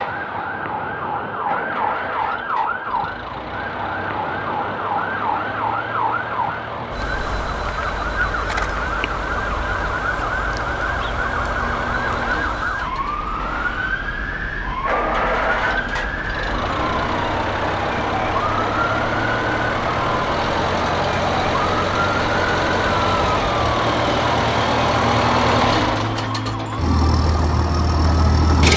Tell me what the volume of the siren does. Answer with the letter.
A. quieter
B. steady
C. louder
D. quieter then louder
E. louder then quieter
B.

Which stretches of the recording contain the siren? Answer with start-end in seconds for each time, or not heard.
0.0-28.7.